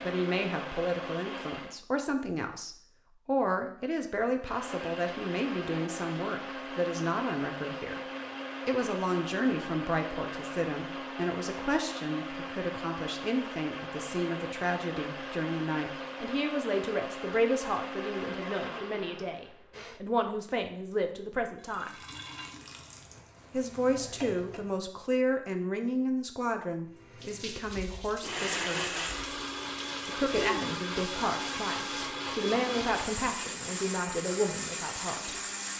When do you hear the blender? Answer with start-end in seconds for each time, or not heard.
0.0-1.8, 4.4-20.0, 27.7-35.7.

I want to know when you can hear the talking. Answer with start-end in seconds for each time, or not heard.
0.0-8.0, 8.7-21.9, 23.5-29.0, 30.1-35.4.